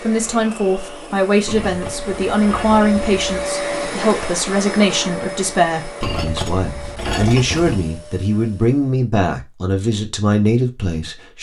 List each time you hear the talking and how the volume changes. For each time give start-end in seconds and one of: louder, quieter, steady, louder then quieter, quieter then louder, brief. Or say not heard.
0.0-11.3 steady.